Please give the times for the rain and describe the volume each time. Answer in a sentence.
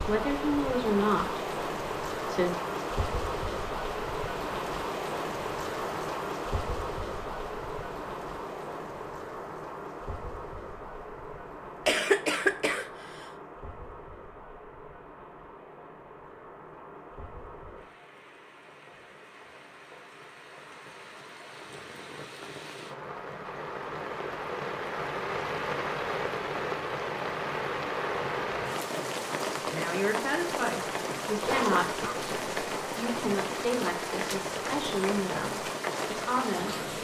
You can hear the rain from 0.0 to 36.9 s, getting quieter then louder.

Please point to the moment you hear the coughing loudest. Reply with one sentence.
The loudest moment of the coughing is at 12 seconds.